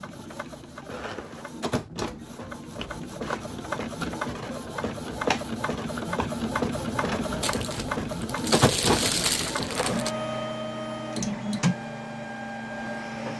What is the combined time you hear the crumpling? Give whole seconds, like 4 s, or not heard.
3 s.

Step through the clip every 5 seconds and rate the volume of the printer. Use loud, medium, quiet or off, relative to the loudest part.
medium, loud, loud.